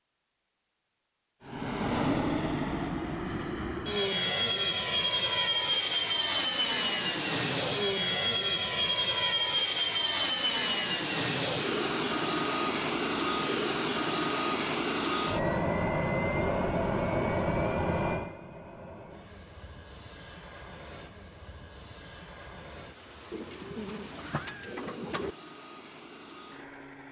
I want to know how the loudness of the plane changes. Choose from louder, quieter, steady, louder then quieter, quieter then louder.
quieter.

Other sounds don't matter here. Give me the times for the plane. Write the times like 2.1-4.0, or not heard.
1.4-27.0.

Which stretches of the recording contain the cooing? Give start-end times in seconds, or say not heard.
23.3-25.4.